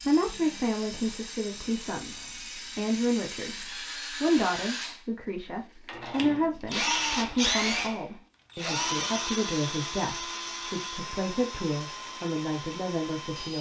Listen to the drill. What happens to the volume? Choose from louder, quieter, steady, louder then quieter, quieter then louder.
louder then quieter.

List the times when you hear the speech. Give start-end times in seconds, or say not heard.
0.1-13.5.